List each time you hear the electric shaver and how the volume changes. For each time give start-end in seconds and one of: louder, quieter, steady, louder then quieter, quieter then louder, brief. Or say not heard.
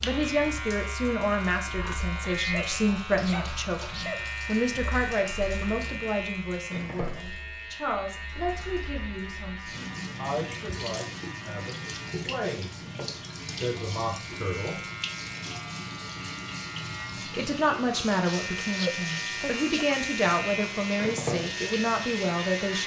0.0-22.8 quieter then louder.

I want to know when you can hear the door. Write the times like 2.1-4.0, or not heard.
not heard.